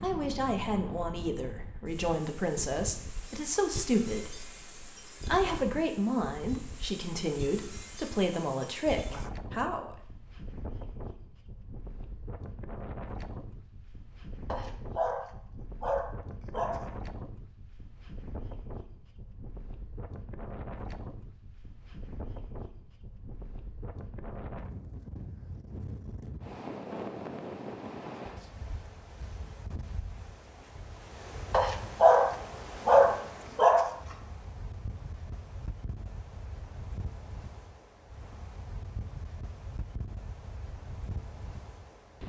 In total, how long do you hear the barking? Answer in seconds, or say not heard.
5 s.